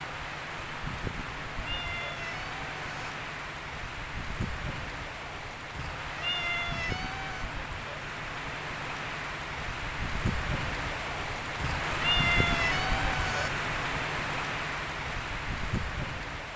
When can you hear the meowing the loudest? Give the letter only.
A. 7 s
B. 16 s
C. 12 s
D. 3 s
C.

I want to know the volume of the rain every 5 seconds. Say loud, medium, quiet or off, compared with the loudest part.
medium, medium, loud, loud.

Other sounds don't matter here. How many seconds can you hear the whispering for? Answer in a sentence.
The whispering can't be heard in this clip.